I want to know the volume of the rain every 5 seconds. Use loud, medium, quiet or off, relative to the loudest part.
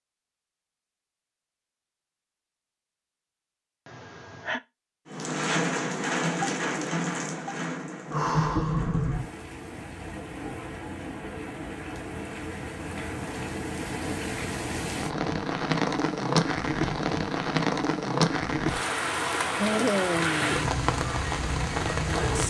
off, loud, medium, loud, loud.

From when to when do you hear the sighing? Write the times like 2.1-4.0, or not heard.
3.9-4.6, 8.1-9.1, 19.6-20.8.